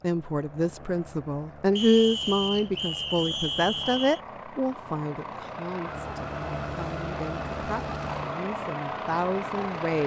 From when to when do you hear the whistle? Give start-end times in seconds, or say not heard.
1.8-4.2.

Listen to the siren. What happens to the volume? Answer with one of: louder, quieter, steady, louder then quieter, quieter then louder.
steady.